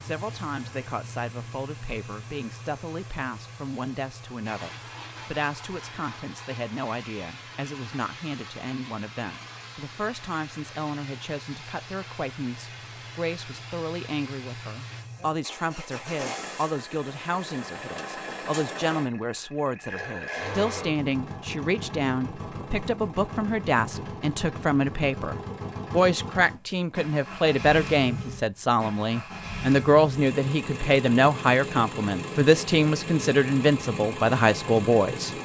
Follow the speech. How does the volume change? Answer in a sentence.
The volume of the speech goes up.